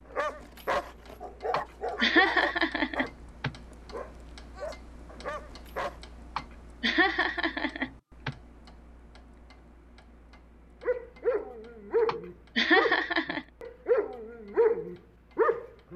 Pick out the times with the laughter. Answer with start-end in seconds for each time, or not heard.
1.5-3.5, 6.3-8.3, 12.1-13.4.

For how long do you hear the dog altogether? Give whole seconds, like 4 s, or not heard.
11 s.